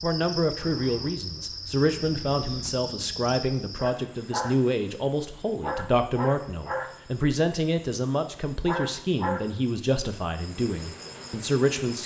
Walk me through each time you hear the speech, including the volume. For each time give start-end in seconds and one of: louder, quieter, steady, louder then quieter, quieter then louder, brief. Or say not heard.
0.0-12.0 steady.